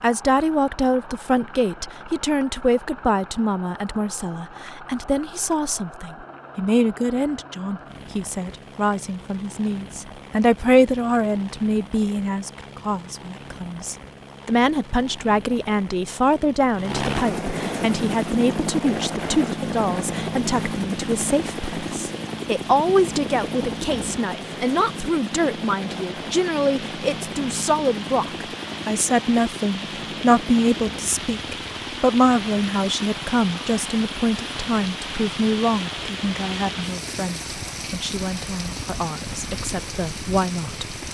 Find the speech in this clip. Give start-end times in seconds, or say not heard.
0.0-41.0.